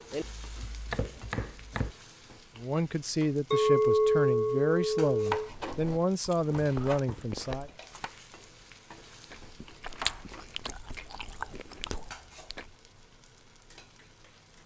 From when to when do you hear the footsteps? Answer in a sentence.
The footsteps can't be heard in this clip.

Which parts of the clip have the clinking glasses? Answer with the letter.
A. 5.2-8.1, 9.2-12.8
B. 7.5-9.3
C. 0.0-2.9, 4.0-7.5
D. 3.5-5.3
D.